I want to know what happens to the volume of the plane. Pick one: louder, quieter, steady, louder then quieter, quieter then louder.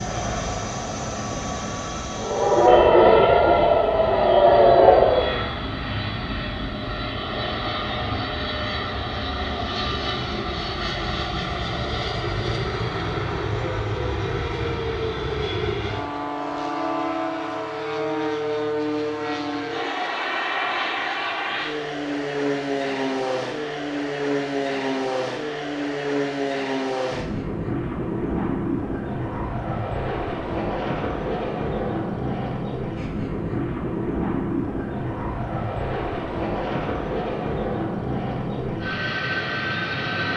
steady.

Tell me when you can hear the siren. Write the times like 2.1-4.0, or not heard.
2.1-5.4.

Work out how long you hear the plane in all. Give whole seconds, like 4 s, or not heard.
40 s.